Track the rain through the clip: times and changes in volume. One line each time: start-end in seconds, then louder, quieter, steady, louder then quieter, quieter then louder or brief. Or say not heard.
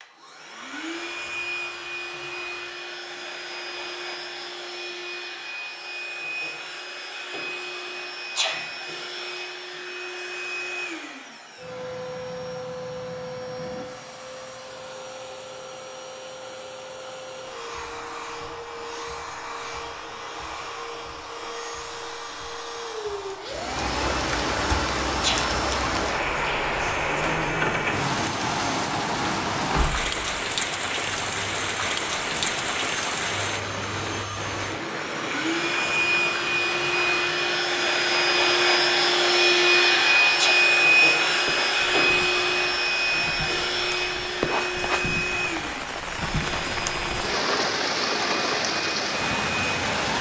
23.4-50.1 quieter then louder.